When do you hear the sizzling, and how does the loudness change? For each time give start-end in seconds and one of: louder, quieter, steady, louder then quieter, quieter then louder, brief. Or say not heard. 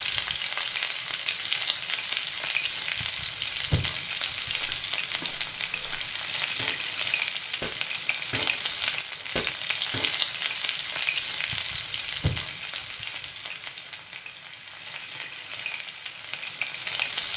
0.0-17.3 quieter.